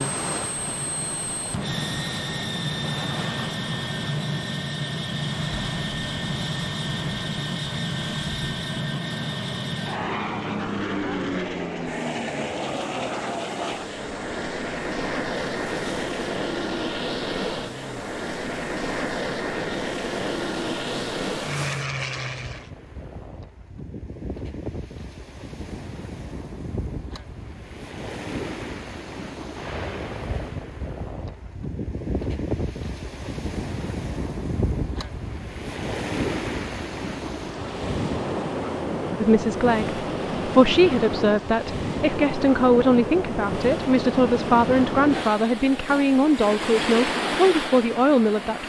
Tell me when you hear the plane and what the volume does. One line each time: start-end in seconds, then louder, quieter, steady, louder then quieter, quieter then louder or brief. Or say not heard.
0.0-22.7 steady.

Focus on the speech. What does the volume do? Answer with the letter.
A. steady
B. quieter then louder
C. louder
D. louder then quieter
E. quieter
A.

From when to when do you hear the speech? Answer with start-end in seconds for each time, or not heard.
39.1-48.6.